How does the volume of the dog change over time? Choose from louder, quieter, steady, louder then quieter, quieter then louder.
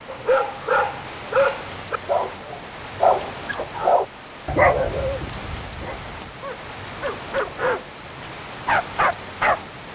quieter then louder.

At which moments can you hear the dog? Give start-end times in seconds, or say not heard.
0.1-9.6.